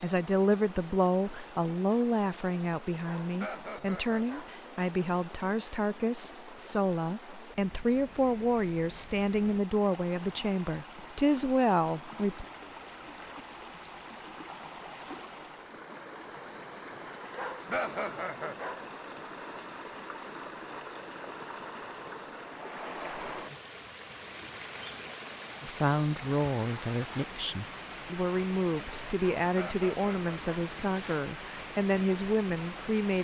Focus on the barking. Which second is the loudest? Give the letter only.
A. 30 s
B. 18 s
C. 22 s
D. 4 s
B.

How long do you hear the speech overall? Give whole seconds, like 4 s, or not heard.
20 s.